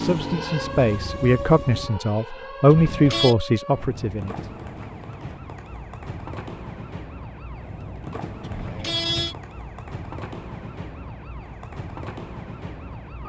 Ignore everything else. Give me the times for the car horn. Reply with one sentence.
You can hear the car horn from 2.6 to 3.4 s and from 8.4 to 9.3 s.